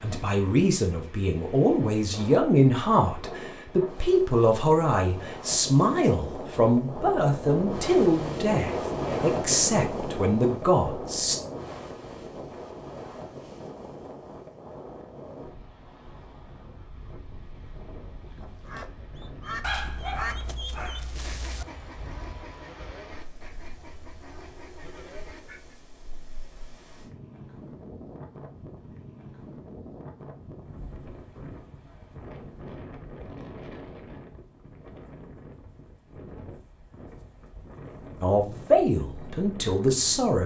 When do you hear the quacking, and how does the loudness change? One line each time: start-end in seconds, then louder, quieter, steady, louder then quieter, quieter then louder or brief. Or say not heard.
18.2-25.8 quieter.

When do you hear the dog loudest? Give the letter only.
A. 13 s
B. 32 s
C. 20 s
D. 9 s
C.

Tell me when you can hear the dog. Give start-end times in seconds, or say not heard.
19.6-21.6.